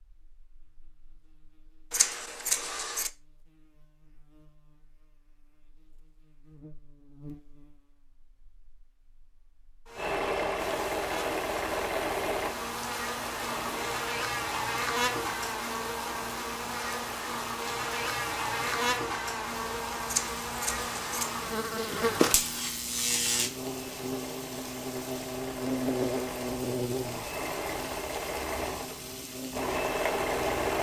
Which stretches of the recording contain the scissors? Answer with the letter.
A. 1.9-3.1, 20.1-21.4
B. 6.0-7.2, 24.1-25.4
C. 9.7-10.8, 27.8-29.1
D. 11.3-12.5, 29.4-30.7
A.